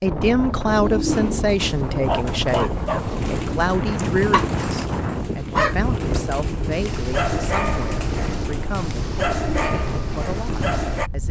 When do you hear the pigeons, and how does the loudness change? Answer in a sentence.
You can hear the pigeons from 0.7 to 11.1 s, at a steady volume.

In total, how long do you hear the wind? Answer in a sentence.
The wind can be heard for 11 seconds in total.